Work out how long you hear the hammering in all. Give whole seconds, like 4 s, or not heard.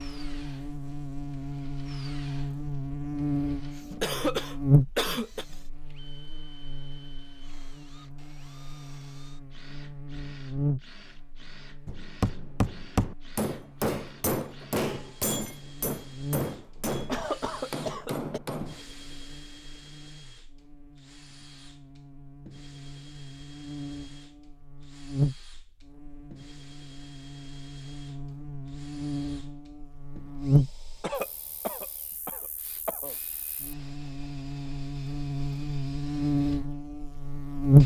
7 s.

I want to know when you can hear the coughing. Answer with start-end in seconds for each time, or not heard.
4.0-5.5, 17.1-18.4, 31.0-33.1.